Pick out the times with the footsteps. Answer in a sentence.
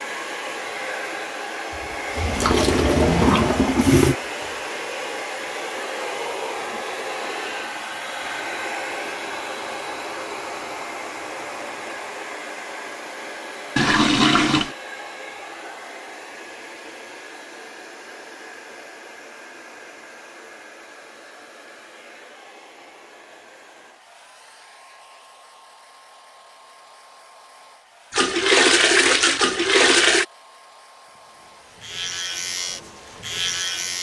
You can't hear the footsteps here.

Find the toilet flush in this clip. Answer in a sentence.
You can hear the toilet flush from 1.7 to 4.2 s, from 13.8 to 14.8 s and from 28.1 to 30.2 s.